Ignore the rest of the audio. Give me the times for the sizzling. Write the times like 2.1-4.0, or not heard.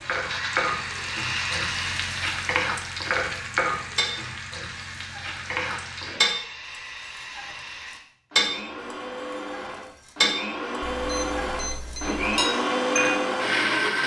0.0-6.2.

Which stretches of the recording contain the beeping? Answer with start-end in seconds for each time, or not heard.
10.8-12.4.